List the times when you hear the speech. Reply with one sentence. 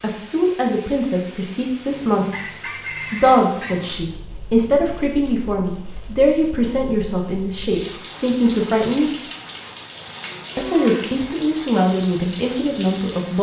The speech can be heard from 0.0 to 9.2 s and from 10.6 to 13.3 s.